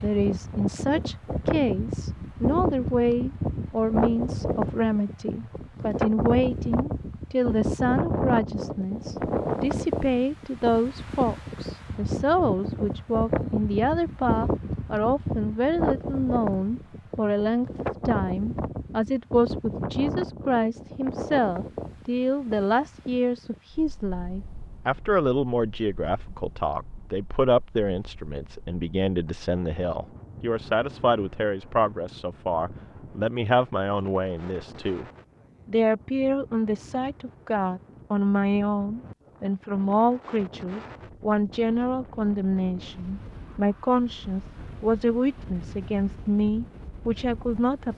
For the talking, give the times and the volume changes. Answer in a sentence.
The talking can be heard from 0.0 to 35.0 s, at a steady volume; and from 35.6 to 47.9 s, at a steady volume.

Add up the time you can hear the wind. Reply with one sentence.
You can hear the wind for 48 seconds altogether.